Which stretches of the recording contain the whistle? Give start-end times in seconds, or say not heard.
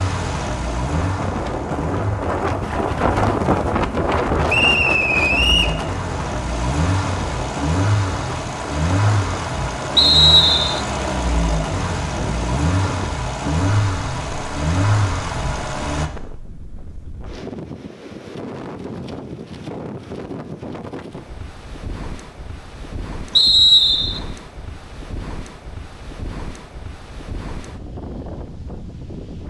4.5-5.7, 9.9-10.8, 23.4-24.2.